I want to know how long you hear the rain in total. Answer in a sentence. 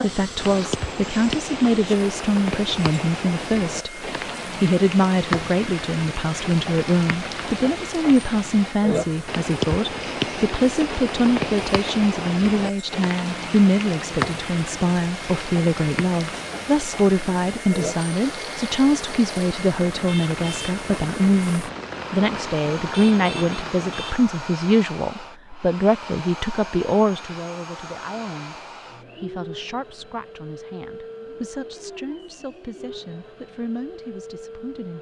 You can hear the rain for 24 seconds altogether.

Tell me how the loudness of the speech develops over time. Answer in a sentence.
The volume of the speech goes down.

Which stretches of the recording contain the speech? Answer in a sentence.
The speech can be heard from 0.0 to 34.9 s.